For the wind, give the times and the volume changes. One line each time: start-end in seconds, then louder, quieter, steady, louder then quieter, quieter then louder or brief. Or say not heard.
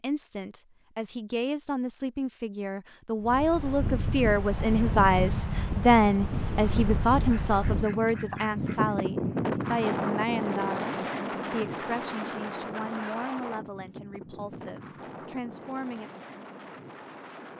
3.2-17.5 quieter.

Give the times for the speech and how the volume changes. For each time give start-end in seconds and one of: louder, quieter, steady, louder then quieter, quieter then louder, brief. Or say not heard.
0.0-16.1 louder then quieter.